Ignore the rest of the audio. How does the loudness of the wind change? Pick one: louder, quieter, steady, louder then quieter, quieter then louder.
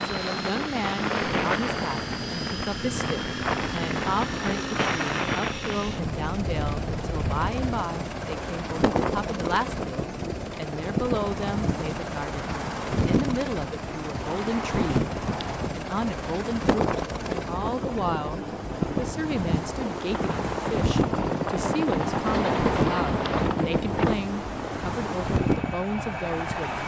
steady.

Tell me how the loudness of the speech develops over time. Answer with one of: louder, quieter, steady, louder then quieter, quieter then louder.
steady.